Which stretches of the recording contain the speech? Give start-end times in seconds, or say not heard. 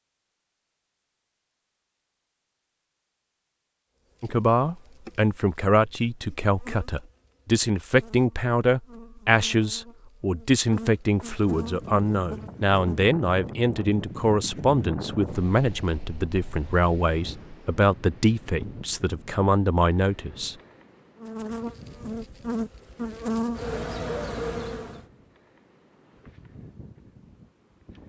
4.2-20.6.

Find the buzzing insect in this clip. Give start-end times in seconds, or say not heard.
4.0-13.2, 21.1-25.0.